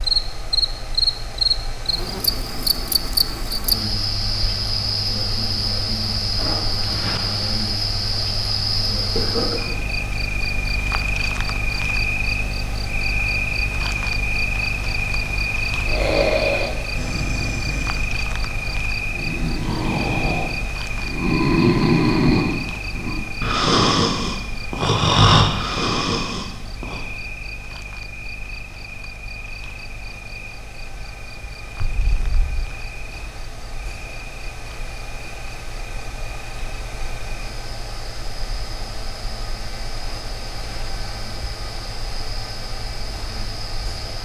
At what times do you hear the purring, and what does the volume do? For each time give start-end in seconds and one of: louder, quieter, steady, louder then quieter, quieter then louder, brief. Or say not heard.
not heard.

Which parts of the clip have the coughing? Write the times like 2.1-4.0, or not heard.
9.2-9.8, 31.8-32.8.